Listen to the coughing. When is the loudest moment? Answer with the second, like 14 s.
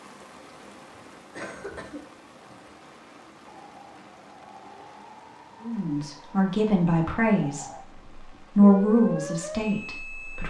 2 s.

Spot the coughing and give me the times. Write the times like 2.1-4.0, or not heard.
1.4-2.8.